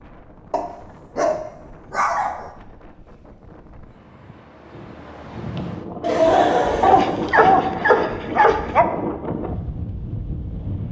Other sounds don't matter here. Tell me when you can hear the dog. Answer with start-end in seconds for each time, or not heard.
0.5-2.5, 6.8-8.8.